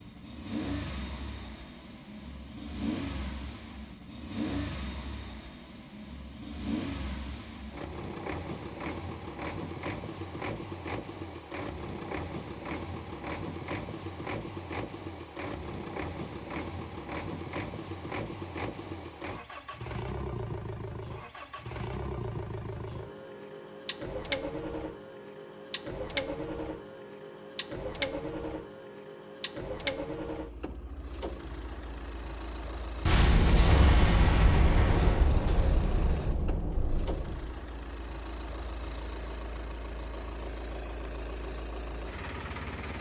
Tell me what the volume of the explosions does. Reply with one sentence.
The volume of the explosions goes down.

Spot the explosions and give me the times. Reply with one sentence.
The explosions can be heard from 33.0 to 37.5 s.